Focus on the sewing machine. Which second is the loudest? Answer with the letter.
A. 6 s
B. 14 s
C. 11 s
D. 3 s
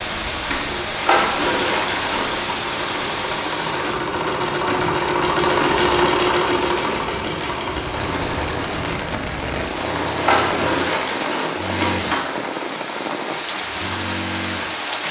A.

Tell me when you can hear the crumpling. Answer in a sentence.
The crumpling can be heard from 0.9 to 2.4 s and from 10.2 to 12.2 s.